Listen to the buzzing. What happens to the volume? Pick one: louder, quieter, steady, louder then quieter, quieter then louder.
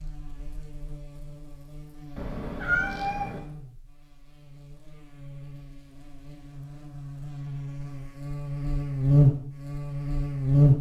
louder.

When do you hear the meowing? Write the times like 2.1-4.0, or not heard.
2.1-3.4.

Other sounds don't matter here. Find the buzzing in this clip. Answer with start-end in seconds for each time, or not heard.
0.0-10.7.